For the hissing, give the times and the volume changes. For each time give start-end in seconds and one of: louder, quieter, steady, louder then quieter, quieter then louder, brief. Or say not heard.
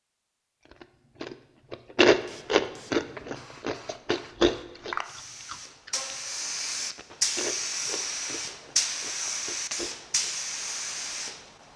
2.1-11.7 louder.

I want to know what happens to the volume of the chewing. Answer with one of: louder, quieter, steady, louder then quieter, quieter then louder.
quieter.